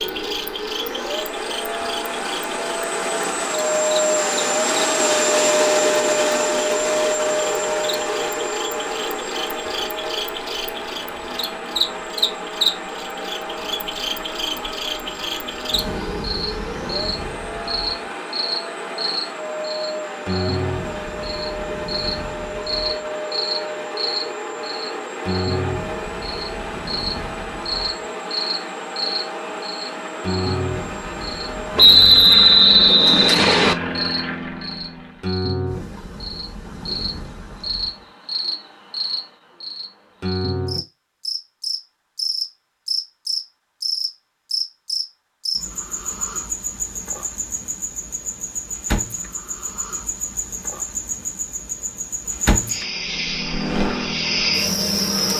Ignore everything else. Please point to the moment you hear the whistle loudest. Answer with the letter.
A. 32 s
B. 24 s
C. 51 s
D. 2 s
A.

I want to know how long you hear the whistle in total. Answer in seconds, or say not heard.
2 s.